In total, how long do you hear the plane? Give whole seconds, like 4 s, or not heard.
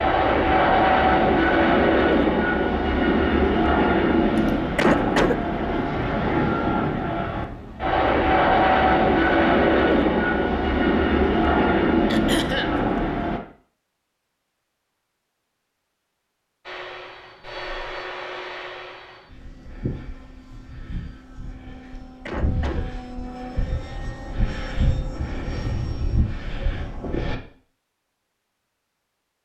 24 s.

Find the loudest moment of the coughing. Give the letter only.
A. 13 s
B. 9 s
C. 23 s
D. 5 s
D.